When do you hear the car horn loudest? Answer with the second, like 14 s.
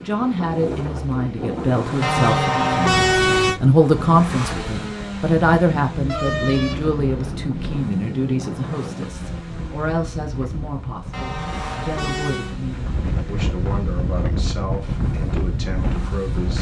3 s.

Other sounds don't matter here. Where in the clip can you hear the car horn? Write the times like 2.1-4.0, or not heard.
2.0-3.6, 6.0-7.8, 11.1-12.6.